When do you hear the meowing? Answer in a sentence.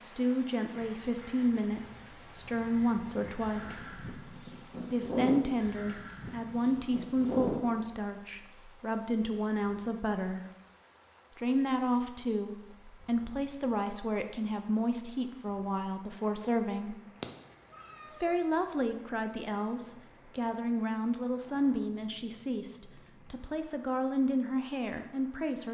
You can hear the meowing from 17.2 to 18.4 s.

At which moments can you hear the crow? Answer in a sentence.
The crow can be heard from 0.7 to 7.6 s.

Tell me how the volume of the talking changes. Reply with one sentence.
The loudness of the talking stays about the same.